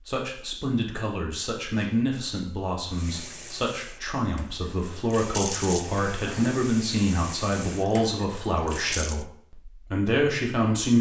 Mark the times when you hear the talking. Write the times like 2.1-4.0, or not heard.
0.1-10.9.